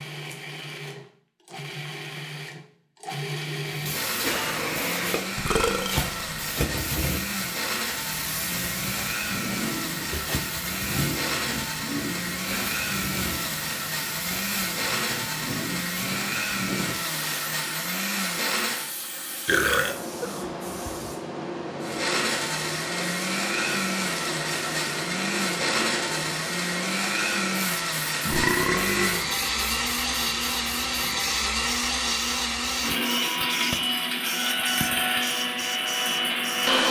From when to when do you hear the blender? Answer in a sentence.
The blender can be heard from 0.0 to 18.9 s and from 21.8 to 36.8 s.